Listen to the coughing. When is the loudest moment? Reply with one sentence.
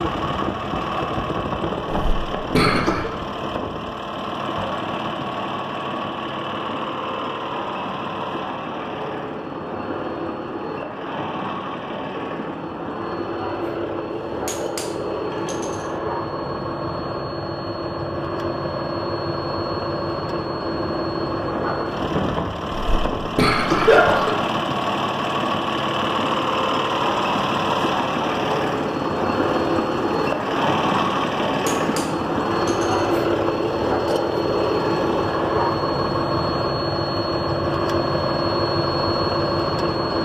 The volume of the coughing peaks at 24 seconds.